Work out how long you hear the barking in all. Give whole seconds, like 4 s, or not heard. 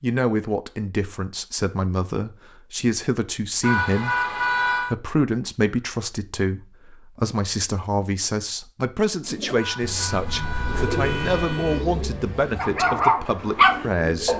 2 s.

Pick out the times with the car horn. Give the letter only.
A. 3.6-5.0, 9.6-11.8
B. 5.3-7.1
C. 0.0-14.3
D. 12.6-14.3
A.